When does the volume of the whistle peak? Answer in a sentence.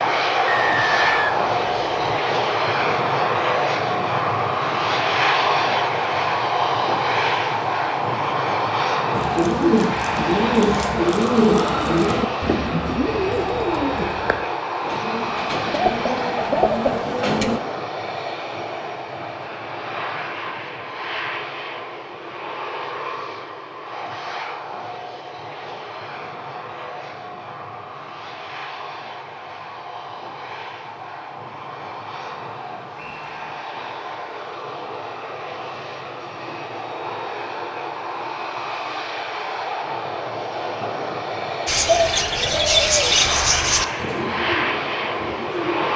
The volume of the whistle peaks at 1 second.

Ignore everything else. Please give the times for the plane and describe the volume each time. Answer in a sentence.
You can hear the plane from 0.0 to 45.9 s, getting quieter then louder.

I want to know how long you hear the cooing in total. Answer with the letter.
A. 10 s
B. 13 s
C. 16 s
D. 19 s
B.